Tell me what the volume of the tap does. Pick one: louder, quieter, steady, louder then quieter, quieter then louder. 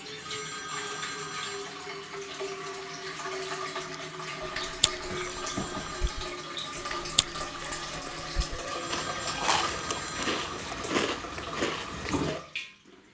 steady.